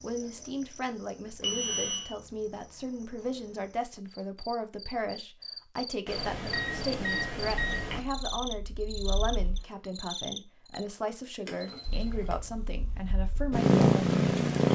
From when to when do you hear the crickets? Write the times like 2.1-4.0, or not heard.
0.0-10.8.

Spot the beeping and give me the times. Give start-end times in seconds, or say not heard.
1.4-2.1, 6.0-8.0, 11.4-12.3.